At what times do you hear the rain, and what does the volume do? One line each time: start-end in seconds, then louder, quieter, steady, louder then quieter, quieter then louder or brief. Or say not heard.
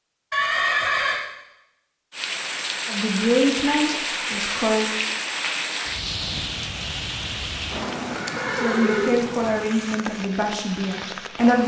2.1-11.6 quieter.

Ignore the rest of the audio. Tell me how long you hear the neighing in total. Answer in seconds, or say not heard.
2 s.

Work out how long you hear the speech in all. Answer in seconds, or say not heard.
5 s.